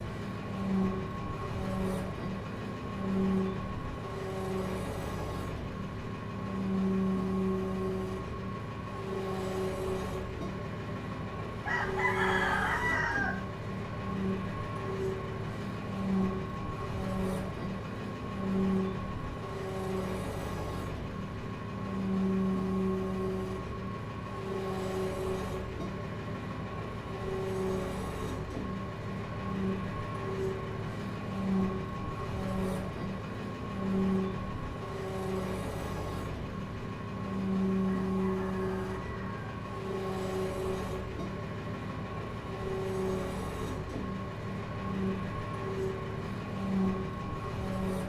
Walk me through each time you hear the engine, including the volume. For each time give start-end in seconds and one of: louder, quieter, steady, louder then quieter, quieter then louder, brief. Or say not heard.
0.0-48.0 steady.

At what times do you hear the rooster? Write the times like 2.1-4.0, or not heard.
11.6-13.4, 37.8-39.6.